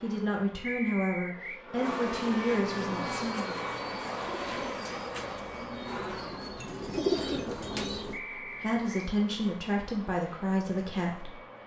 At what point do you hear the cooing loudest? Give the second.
7 s.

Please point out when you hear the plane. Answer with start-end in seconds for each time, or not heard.
0.0-11.6.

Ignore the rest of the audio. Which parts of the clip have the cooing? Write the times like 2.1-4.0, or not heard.
2.7-8.2.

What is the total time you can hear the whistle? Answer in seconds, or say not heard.
2 s.